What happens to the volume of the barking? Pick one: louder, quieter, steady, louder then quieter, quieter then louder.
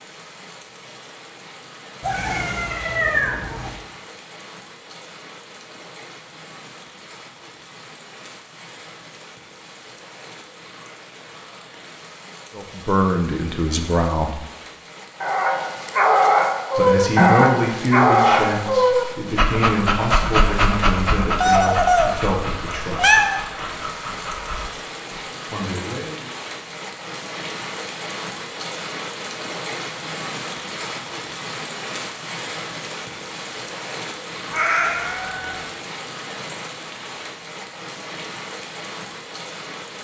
quieter.